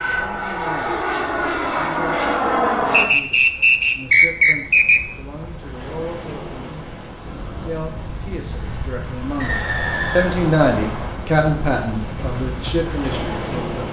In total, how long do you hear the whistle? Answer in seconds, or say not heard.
4 s.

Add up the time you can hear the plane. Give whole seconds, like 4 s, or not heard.
3 s.